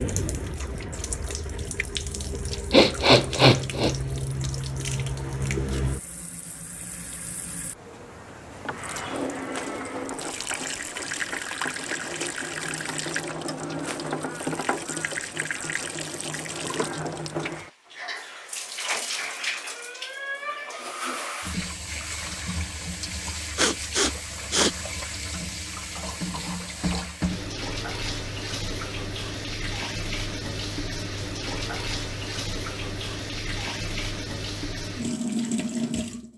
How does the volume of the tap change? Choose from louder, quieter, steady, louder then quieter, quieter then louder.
steady.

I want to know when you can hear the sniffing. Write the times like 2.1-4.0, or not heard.
2.7-4.0, 23.6-24.7.